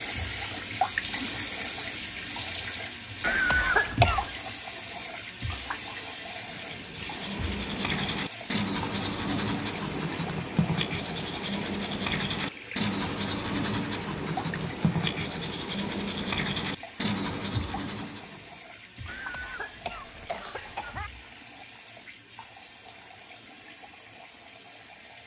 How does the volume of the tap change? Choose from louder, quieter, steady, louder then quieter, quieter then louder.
quieter.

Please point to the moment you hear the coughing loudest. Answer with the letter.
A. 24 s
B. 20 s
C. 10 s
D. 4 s
D.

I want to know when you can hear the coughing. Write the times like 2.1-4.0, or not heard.
3.2-4.2, 19.1-21.1.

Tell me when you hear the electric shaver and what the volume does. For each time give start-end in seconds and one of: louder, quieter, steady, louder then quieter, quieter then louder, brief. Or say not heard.
not heard.